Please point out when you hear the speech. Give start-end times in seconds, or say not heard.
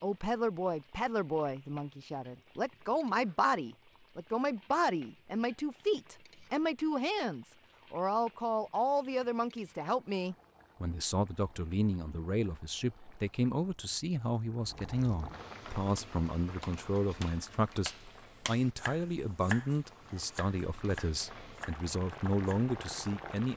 0.0-23.5.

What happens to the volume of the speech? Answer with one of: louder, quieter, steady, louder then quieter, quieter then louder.
steady.